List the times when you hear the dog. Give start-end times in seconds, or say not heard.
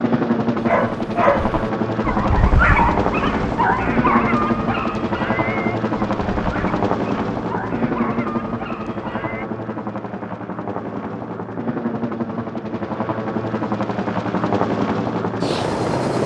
0.6-9.4.